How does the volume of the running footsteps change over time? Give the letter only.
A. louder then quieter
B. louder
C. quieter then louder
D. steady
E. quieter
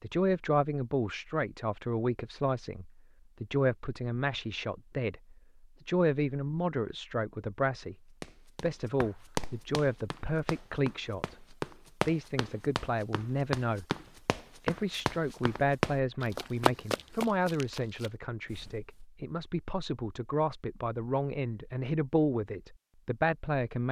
B.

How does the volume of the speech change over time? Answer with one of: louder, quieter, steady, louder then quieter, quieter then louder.
steady.